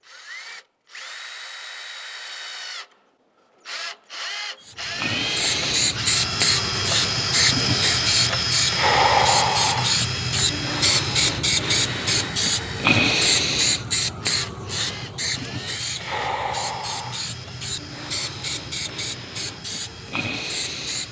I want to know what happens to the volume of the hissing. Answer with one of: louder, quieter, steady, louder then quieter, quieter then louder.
quieter.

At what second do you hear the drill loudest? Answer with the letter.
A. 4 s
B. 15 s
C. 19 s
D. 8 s
D.